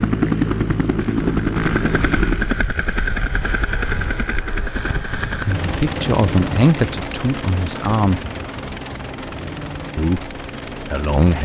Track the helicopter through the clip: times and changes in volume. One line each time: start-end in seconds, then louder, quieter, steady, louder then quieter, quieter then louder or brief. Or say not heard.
0.0-11.4 quieter.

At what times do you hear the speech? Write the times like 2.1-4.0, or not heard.
5.5-8.2, 9.9-11.4.